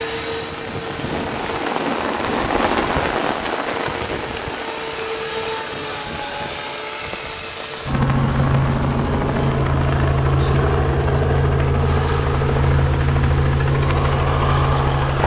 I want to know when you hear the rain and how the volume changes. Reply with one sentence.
You can hear the rain from 0.0 to 15.2 s, getting quieter.